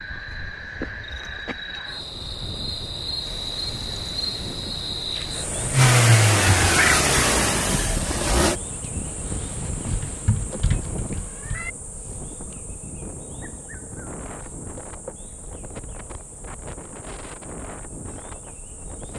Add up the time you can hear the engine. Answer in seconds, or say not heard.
5 s.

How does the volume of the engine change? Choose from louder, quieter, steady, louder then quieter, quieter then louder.
louder then quieter.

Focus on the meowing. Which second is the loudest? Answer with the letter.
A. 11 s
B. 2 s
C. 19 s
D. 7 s
D.